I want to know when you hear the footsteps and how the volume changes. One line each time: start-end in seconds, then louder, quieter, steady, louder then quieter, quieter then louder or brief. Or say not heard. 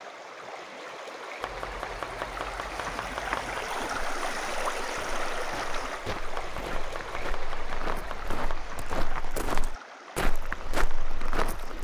3.6-11.8 louder.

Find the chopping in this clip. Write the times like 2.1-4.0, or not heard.
1.4-3.8, 6.3-9.2.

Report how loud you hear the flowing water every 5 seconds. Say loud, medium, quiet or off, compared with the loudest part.
loud, loud, medium.